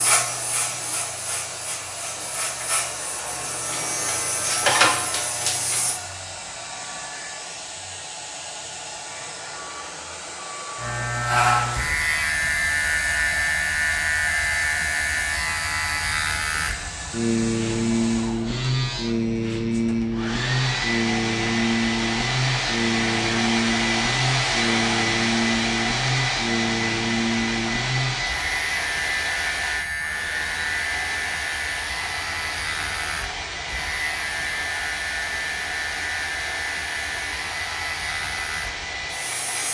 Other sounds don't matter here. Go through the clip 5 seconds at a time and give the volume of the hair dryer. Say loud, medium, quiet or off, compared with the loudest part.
medium, medium, medium, medium, loud, loud, medium, medium.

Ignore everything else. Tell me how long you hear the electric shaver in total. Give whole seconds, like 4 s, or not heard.
35 s.